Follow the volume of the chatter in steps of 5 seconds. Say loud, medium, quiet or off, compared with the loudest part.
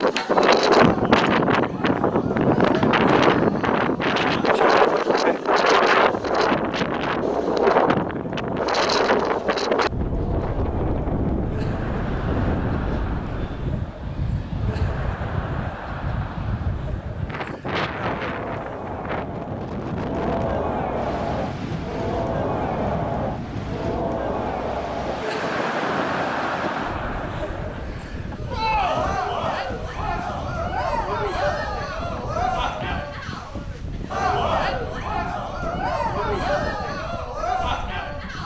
medium, medium, medium, medium, loud, loud, loud, loud.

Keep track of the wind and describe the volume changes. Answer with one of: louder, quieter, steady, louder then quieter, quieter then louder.
quieter.